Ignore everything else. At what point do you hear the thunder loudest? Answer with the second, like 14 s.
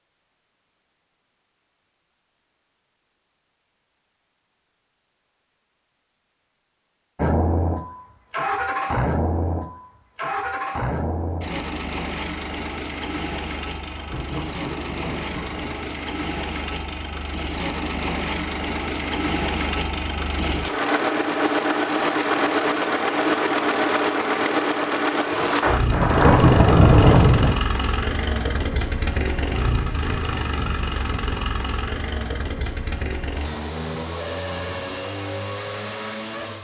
27 s.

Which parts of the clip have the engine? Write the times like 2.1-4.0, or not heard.
7.2-36.5.